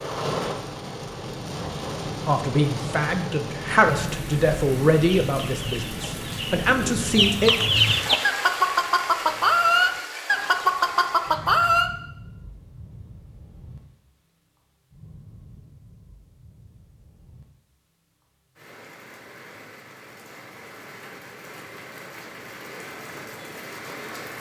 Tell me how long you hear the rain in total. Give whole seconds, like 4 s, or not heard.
24 s.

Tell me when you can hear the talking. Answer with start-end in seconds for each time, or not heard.
2.2-7.5.